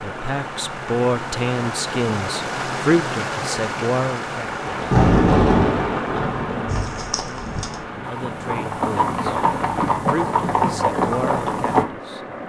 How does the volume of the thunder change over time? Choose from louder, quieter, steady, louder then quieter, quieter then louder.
quieter.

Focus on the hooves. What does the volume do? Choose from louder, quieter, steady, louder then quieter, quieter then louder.
louder.